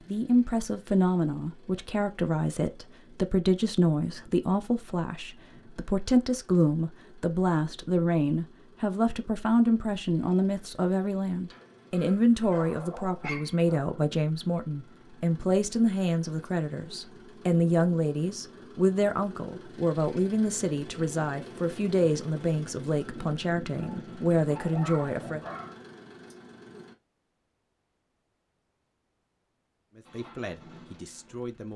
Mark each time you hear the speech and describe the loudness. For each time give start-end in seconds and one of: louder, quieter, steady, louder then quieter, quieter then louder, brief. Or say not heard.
0.1-25.4 steady
29.9-31.7 brief.